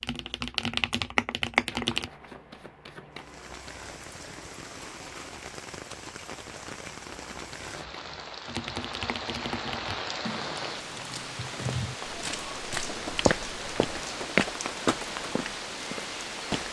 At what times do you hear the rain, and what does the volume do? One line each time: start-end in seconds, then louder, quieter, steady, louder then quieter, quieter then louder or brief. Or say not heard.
3.1-16.6 louder.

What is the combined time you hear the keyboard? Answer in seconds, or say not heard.
9 s.